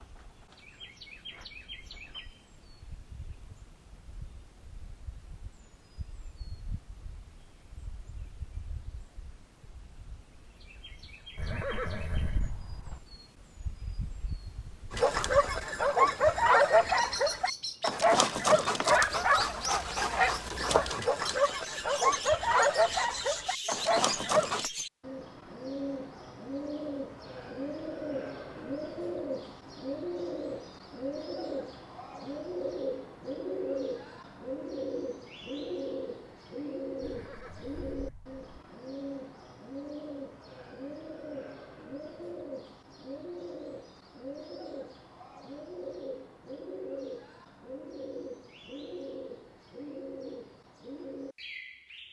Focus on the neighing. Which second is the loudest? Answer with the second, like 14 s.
12 s.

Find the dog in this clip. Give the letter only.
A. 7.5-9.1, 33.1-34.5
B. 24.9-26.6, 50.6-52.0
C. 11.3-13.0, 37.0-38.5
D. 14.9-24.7
D.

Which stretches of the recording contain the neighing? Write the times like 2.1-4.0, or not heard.
11.3-13.0, 37.0-38.5.